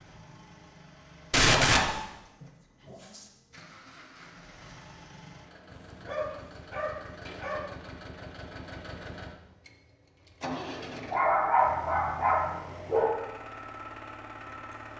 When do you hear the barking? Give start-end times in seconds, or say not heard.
1.3-3.2, 5.7-7.7, 10.4-13.2.